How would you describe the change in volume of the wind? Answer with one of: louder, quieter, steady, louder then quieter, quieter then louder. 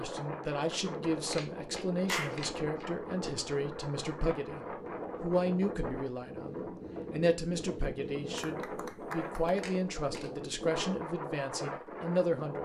steady.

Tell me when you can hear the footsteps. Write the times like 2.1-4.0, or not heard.
not heard.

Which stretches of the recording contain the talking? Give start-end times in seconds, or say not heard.
0.0-12.6.